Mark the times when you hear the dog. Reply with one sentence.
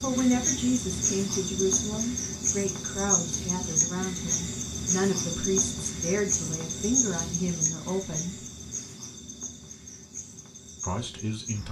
You can't hear the dog here.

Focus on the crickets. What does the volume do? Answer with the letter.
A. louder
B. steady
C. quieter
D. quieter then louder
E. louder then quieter
C.